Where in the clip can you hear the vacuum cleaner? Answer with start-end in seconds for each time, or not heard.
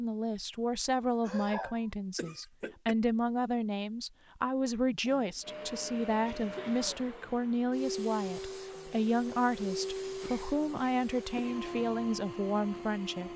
5.4-13.3.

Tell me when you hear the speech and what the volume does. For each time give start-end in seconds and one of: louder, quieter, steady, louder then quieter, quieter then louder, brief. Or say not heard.
0.0-13.3 steady.